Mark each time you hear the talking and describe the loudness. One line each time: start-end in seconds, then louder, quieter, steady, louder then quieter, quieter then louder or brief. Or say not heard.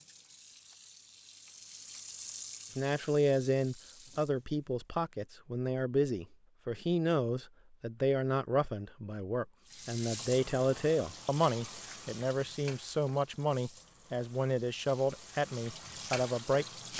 2.8-16.9 steady.